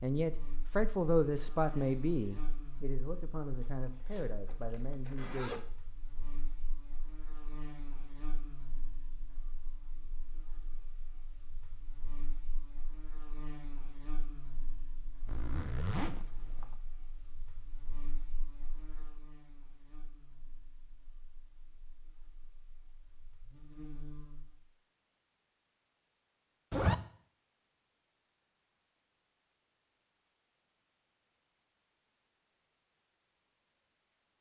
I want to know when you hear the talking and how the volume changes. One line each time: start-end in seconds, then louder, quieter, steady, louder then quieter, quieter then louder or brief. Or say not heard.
0.0-5.7 quieter.